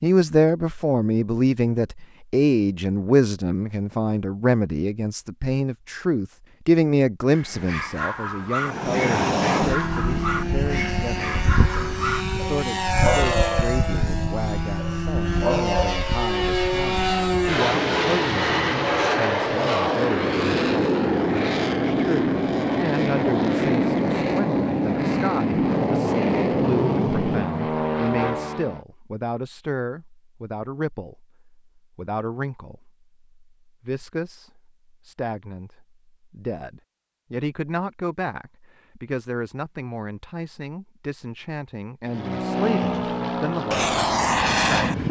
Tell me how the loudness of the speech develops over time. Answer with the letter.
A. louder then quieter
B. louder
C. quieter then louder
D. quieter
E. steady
D.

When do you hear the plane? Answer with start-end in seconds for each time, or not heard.
8.6-28.8, 42.0-45.0.